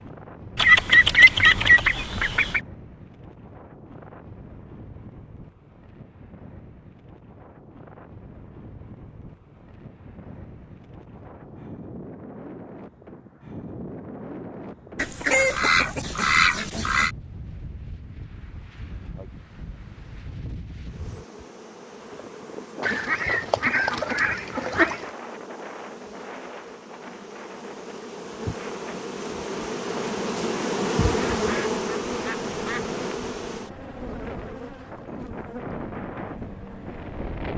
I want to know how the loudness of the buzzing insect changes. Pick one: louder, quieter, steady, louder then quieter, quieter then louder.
louder then quieter.